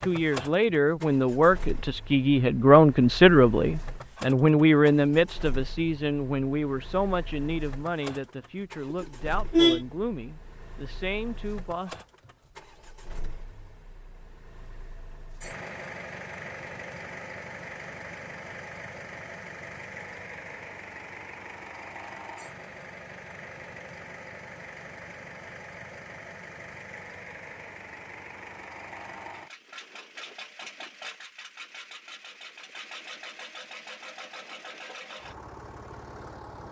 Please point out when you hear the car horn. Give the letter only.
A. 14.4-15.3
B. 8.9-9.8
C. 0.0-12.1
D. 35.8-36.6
B.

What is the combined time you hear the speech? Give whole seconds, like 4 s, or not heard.
12 s.